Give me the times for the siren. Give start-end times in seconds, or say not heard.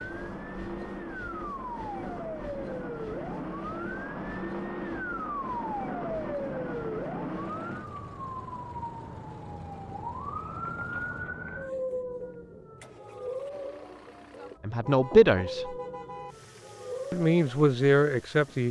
0.0-18.6.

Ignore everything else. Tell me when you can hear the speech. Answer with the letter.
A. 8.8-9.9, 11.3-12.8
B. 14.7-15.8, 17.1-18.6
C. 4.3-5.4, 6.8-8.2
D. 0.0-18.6
B.